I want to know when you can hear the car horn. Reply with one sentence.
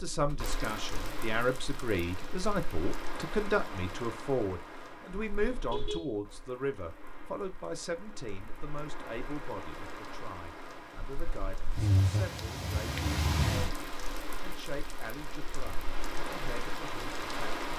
The car horn can be heard from 5.5 to 6.2 s.